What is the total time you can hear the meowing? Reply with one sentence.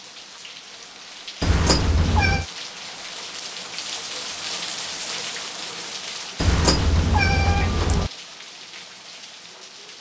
The meowing can be heard for 3 seconds in total.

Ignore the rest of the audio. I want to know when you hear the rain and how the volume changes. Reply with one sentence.
You can hear the rain from 0.0 to 9.9 s, getting louder then quieter.